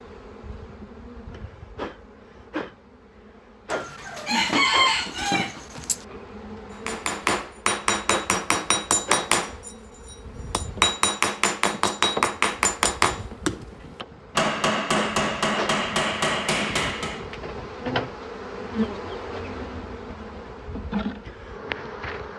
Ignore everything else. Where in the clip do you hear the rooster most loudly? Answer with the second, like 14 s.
5 s.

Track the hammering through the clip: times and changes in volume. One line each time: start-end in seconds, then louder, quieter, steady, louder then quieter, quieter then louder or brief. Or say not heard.
6.8-17.2 steady.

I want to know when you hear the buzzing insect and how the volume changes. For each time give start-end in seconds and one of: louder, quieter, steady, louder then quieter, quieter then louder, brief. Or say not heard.
0.0-22.3 louder.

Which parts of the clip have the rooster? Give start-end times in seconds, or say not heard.
3.7-6.0.